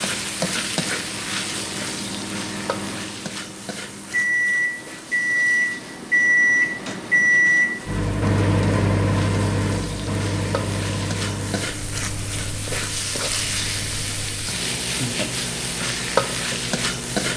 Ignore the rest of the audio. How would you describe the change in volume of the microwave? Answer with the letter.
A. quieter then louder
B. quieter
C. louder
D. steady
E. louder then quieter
E.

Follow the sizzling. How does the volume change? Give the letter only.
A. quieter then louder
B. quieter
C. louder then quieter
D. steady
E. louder
A.